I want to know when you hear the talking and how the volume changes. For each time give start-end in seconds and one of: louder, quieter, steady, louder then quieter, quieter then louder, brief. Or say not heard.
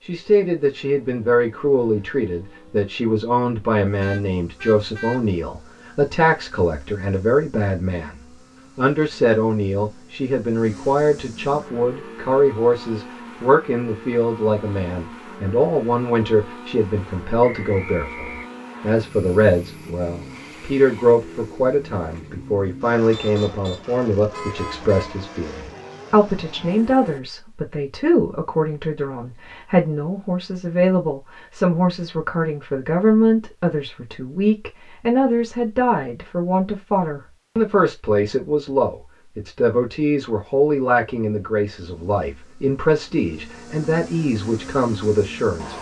0.1-45.7 steady.